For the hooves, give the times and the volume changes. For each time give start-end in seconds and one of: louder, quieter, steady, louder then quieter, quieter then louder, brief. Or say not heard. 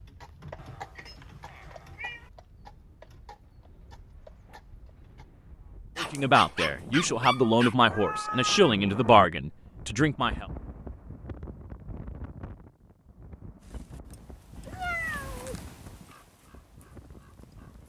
0.0-5.3 quieter
13.6-17.8 louder then quieter.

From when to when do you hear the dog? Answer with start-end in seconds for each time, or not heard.
6.0-7.8.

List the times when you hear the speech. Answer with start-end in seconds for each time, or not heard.
6.0-10.4.